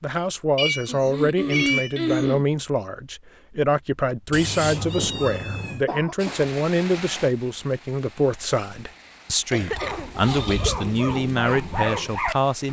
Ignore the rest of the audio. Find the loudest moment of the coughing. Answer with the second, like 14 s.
2 s.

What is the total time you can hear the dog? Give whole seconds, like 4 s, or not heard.
3 s.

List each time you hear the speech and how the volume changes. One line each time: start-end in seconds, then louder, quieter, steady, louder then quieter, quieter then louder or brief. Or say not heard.
0.0-12.6 steady.